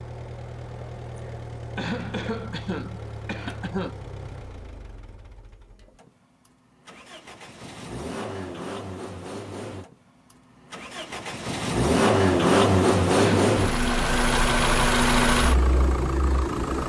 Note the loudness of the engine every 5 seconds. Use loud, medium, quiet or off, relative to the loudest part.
quiet, quiet, loud, loud.